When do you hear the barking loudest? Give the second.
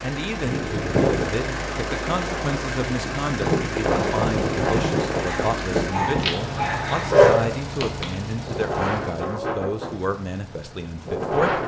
7 s.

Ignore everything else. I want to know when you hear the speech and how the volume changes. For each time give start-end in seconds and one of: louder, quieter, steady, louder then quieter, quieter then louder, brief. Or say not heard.
0.0-11.6 steady.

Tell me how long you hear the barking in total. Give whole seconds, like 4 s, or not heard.
3 s.